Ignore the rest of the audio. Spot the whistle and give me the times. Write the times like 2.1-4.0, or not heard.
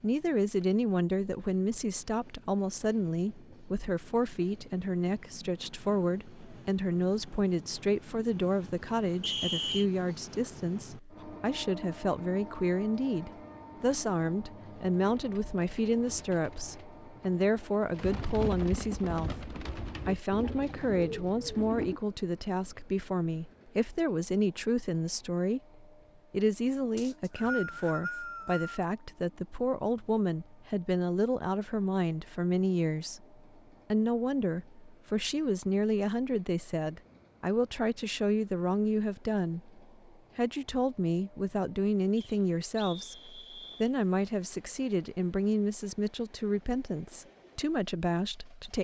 9.2-9.8, 26.9-28.9, 42.1-43.9.